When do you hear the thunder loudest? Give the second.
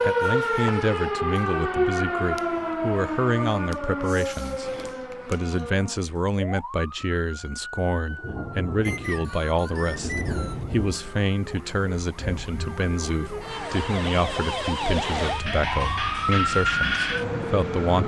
10 s.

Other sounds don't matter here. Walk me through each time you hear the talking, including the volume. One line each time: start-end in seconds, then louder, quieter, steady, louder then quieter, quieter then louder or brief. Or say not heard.
0.0-18.0 steady.